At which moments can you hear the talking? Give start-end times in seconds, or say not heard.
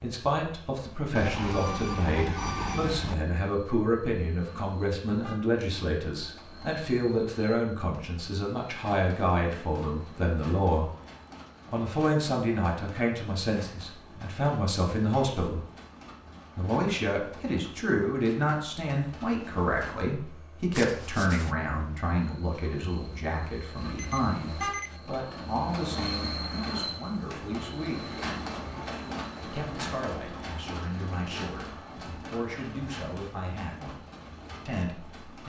0.0-10.9, 11.7-15.7, 16.6-28.1, 29.4-31.7, 32.3-34.0, 34.6-35.4.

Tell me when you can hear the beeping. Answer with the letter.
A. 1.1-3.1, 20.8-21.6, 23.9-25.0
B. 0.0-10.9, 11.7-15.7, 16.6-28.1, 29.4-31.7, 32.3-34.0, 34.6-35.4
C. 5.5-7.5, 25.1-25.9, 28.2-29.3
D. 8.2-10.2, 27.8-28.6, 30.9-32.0
A.